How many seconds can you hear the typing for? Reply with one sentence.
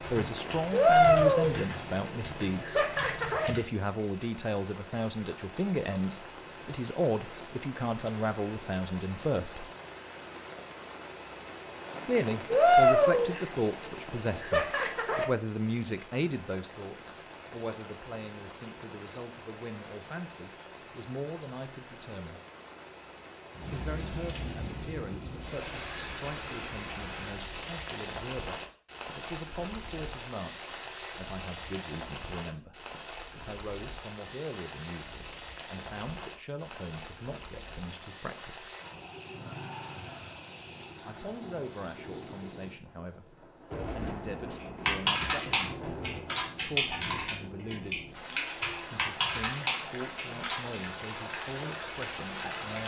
You can hear the typing for 10 seconds altogether.